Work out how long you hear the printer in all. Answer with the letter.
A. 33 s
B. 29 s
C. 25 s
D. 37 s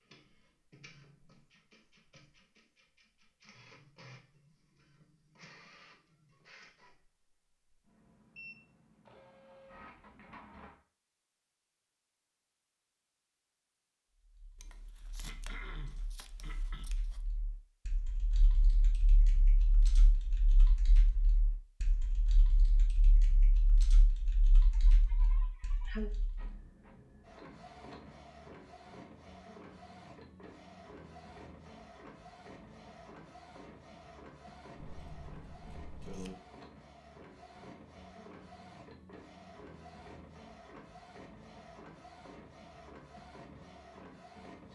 B.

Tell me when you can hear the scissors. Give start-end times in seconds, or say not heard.
14.6-17.2, 34.8-36.4.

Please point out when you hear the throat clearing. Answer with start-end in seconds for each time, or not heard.
14.8-16.9, 24.7-26.1.